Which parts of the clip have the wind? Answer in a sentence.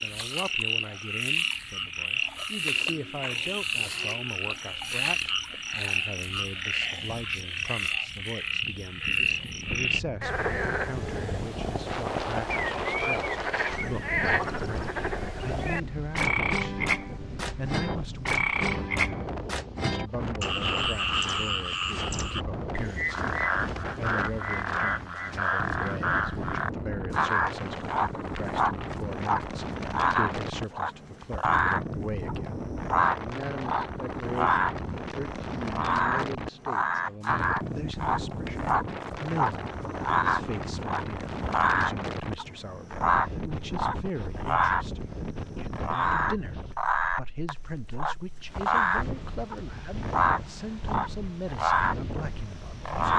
The wind can be heard from 9.6 to 53.1 s.